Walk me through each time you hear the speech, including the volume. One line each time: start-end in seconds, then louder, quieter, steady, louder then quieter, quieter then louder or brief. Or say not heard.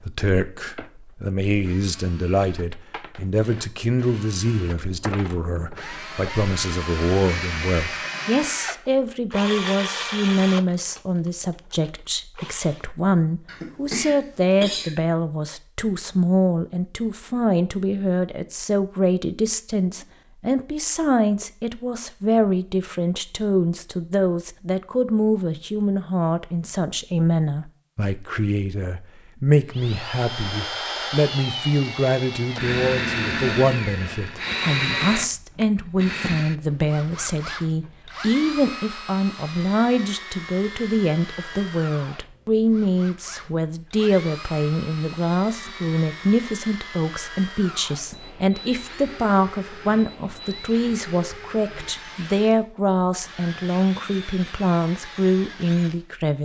0.0-56.4 steady.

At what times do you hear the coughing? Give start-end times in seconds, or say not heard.
13.4-14.9.